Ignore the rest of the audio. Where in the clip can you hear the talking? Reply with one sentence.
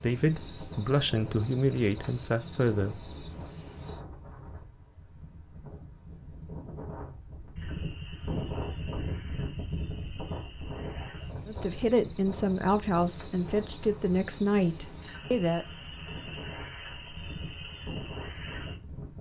The talking can be heard from 0.0 to 3.1 s and from 11.4 to 15.7 s.